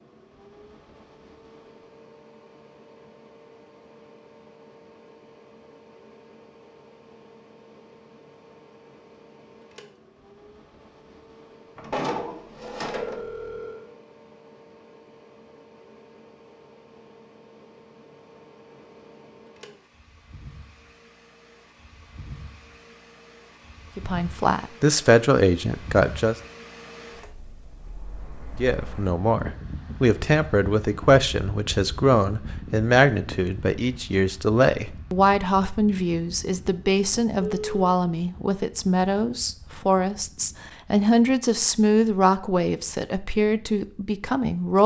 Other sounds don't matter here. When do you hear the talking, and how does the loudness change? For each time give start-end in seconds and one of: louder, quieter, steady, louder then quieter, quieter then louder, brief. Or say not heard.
23.9-26.4 brief
28.6-44.8 steady.